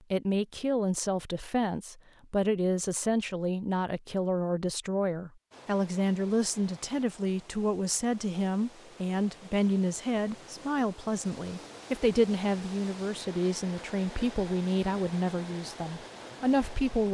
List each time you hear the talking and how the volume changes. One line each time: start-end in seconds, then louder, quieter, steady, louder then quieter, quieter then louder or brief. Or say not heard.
0.1-17.0 steady.